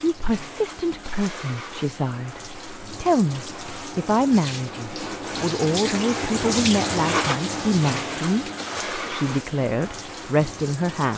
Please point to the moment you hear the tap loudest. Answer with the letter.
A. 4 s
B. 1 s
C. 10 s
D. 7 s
D.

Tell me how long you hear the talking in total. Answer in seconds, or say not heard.
11 s.